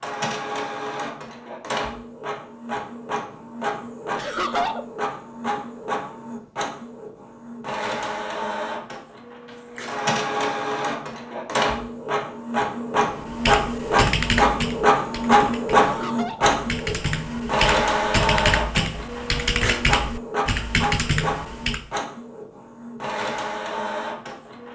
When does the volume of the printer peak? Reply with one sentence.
The volume of the printer peaks at 15 seconds.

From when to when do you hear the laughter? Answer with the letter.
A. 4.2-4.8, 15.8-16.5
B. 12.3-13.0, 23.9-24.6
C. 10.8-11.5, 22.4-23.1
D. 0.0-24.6
A.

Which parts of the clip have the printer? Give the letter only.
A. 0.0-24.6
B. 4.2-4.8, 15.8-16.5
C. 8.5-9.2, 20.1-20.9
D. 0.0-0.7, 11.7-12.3
A.